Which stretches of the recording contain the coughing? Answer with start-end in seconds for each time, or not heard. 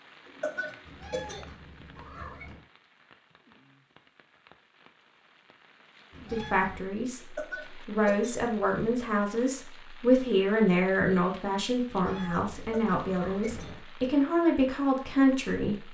0.2-1.6, 7.2-8.4, 12.6-13.8.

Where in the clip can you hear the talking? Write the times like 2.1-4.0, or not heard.
6.3-15.8.